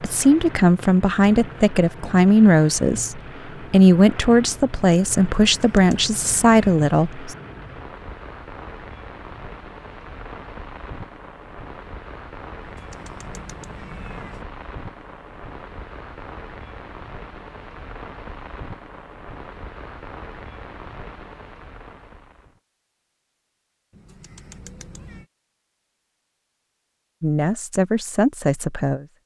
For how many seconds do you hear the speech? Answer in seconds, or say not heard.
9 s.